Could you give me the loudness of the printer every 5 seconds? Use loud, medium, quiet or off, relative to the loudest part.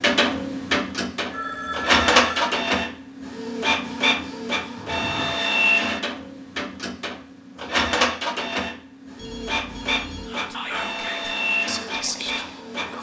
loud, loud, medium.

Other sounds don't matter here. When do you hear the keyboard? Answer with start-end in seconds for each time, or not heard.
not heard.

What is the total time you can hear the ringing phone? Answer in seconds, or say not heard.
3 s.